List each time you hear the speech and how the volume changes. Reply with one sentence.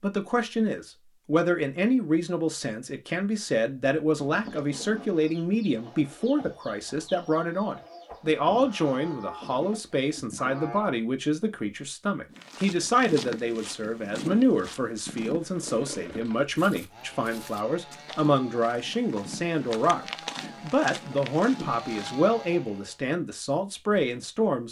You can hear the speech from 0.0 to 24.6 s, at a steady volume.